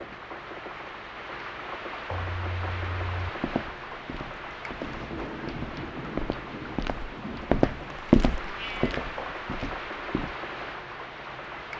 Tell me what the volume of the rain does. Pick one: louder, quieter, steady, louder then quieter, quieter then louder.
steady.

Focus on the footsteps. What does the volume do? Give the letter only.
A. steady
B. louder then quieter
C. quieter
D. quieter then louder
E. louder
B.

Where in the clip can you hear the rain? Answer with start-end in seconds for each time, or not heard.
0.0-11.7.